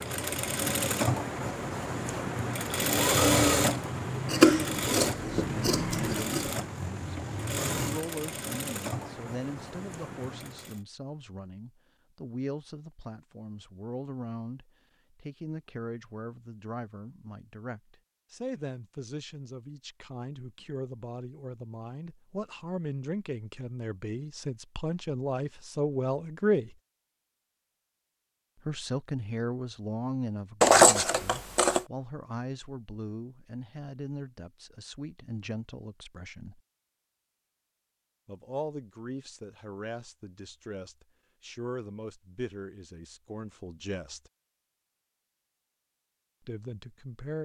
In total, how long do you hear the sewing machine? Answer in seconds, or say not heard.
11 s.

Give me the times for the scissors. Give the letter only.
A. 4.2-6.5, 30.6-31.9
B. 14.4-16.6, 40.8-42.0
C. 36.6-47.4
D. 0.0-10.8
A.